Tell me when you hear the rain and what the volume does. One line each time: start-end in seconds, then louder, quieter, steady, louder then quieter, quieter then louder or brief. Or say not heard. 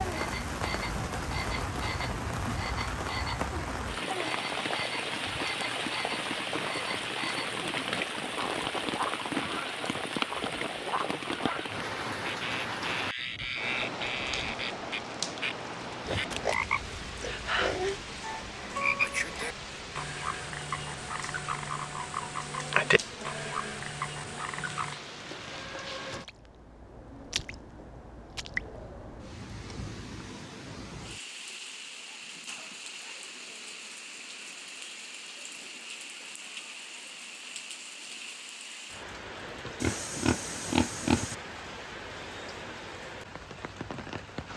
0.0-44.5 quieter.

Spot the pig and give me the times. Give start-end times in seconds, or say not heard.
16.1-18.0, 39.8-41.4.